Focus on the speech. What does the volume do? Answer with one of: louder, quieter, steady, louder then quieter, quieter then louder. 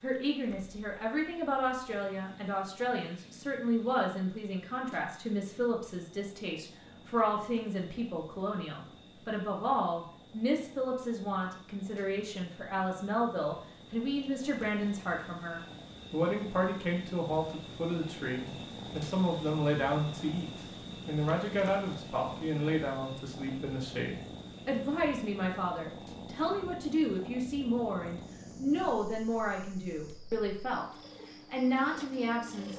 steady.